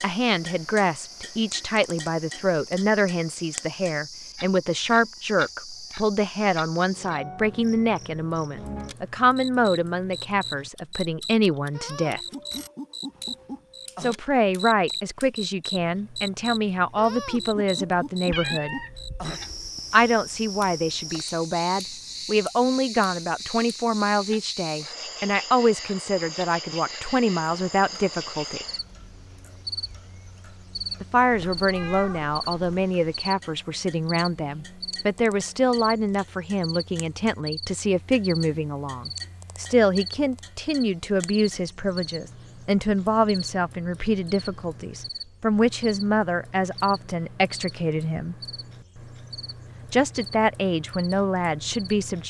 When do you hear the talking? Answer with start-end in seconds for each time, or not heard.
0.0-12.2, 14.0-18.8, 19.9-28.6, 31.0-48.4, 49.9-52.2.